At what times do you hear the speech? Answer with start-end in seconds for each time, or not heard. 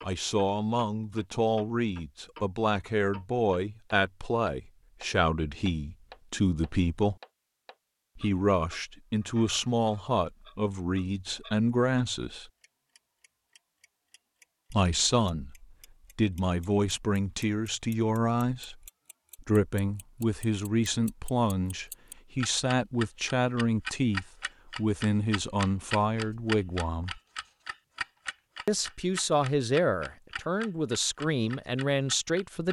0.0-7.2, 8.2-12.4, 14.7-18.8, 19.4-27.2, 28.6-32.6.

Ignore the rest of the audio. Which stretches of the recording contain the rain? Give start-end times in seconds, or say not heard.
not heard.